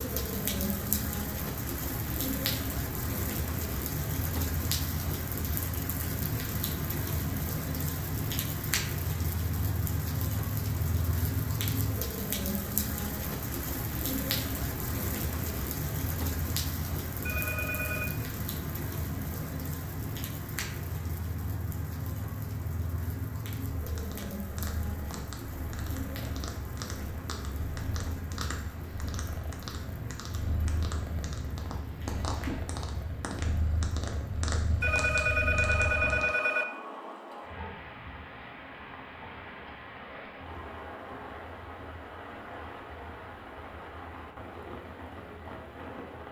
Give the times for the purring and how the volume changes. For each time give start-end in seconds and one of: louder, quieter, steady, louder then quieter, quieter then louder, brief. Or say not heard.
23.8-36.3 louder.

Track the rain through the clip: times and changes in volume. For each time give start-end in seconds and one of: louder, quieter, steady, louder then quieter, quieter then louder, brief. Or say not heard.
0.0-46.2 quieter.